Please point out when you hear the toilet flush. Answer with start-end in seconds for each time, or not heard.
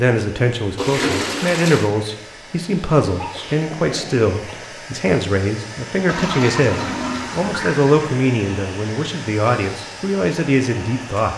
0.8-1.9, 6.0-8.1.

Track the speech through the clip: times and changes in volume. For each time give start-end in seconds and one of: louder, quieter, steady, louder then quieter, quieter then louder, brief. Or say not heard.
0.0-11.3 steady.